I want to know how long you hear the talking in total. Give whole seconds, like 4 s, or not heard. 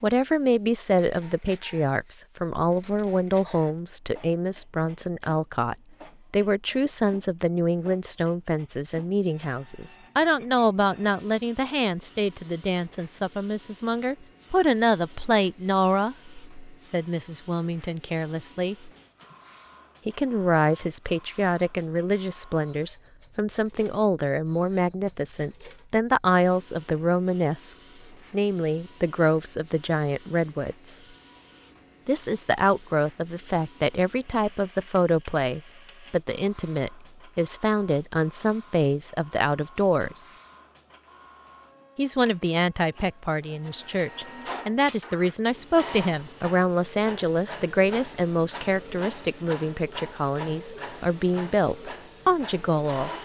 49 s.